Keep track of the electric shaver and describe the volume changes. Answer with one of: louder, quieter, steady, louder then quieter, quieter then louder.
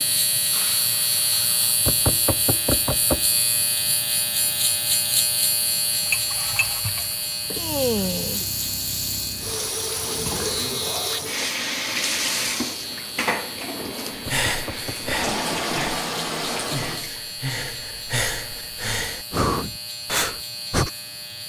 quieter.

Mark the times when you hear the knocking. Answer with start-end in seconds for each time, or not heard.
1.9-3.3, 14.2-15.3.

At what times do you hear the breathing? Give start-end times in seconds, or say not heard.
14.1-20.9.